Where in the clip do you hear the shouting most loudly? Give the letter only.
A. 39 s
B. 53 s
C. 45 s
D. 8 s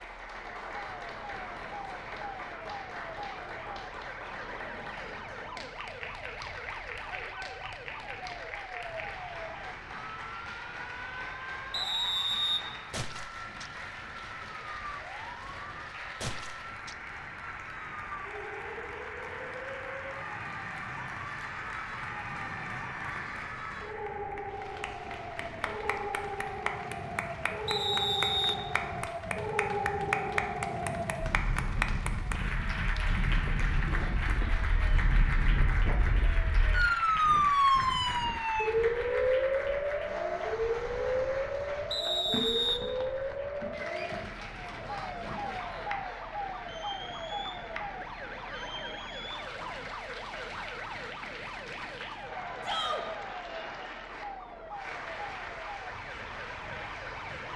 B.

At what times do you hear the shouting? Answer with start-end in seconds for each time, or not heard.
7.0-7.7, 52.6-53.0.